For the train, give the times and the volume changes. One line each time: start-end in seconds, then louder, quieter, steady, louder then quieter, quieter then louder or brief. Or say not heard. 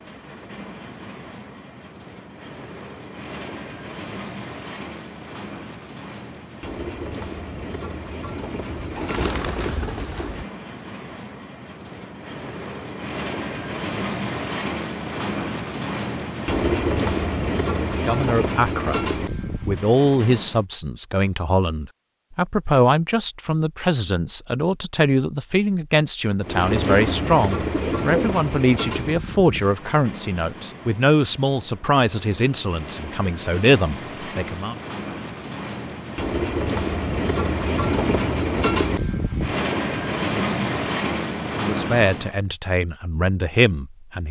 0.0-20.6 louder
26.4-42.4 quieter then louder.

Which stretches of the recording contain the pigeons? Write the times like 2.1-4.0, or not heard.
8.7-10.4, 26.9-28.4.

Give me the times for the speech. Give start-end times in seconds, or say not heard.
17.9-34.8, 41.5-44.2.